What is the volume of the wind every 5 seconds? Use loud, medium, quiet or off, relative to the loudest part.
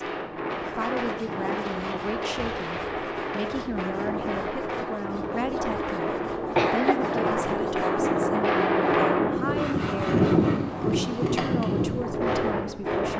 medium, loud, loud.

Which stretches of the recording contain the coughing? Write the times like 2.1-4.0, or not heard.
6.5-7.0.